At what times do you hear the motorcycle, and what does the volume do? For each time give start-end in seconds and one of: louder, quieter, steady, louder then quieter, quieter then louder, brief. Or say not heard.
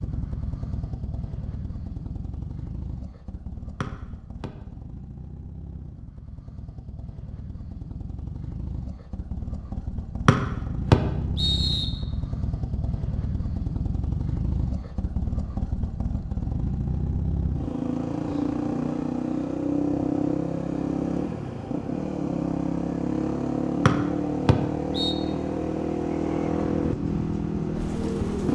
0.0-28.4 louder.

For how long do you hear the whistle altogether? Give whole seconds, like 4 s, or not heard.
4 s.